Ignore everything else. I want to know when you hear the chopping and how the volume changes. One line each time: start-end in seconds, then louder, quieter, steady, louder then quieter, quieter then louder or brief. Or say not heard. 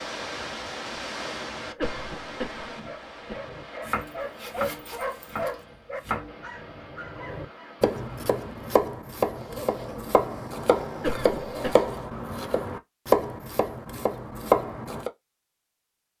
3.5-15.1 louder.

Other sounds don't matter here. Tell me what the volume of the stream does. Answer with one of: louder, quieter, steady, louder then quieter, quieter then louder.
quieter.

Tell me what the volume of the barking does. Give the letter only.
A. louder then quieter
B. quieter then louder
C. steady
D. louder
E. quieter
A.